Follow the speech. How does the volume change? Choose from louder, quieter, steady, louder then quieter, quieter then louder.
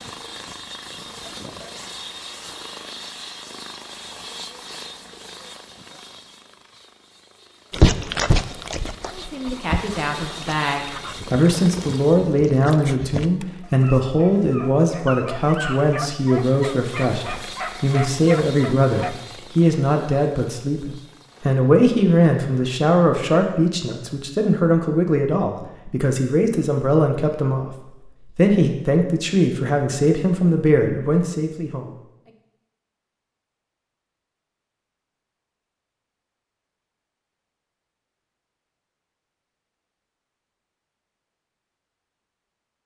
steady.